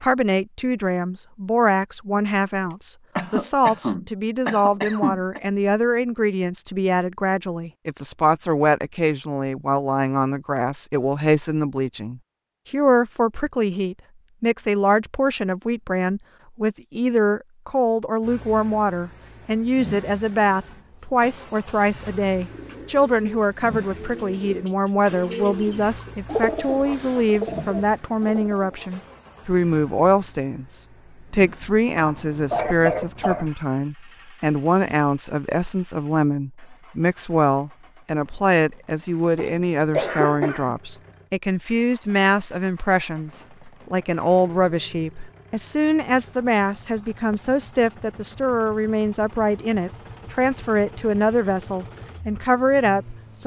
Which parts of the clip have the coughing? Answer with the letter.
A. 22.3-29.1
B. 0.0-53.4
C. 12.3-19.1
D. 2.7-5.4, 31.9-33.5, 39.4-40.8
D.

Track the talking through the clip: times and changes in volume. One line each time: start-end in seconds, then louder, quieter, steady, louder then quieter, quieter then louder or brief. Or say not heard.
0.0-53.4 steady.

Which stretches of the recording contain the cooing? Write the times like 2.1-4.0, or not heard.
22.3-29.1.